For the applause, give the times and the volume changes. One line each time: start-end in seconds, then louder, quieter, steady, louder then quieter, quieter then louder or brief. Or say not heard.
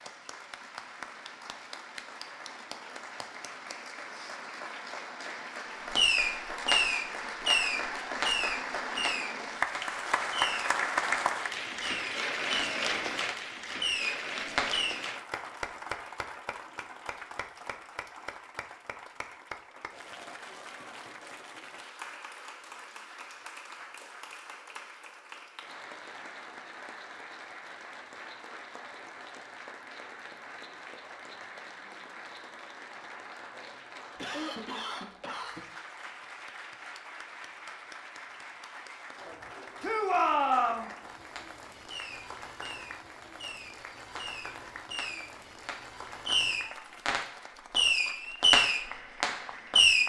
0.0-50.0 quieter.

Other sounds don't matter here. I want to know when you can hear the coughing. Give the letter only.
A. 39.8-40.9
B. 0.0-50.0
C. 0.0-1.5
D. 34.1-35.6
D.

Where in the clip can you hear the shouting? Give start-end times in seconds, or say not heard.
39.8-40.9.